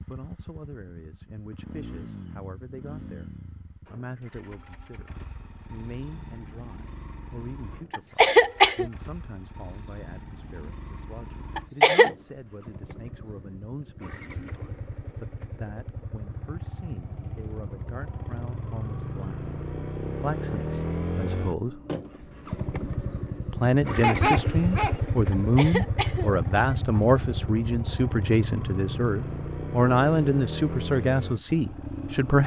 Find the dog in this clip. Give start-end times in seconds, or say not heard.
24.0-25.0.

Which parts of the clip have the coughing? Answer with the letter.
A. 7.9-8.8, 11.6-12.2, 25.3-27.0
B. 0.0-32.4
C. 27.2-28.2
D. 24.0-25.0
A.